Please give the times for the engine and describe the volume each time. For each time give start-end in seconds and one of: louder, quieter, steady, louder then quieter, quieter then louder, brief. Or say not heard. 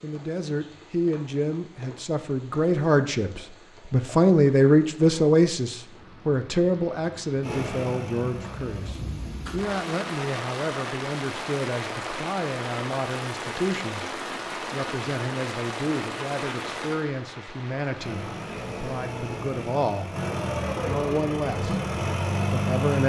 7.4-9.1 brief
17.9-23.0 louder.